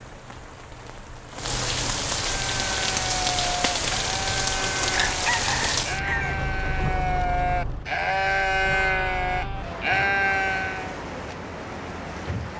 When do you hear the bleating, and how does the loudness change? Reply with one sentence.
The bleating can be heard from 2.4 to 11.0 s, getting louder.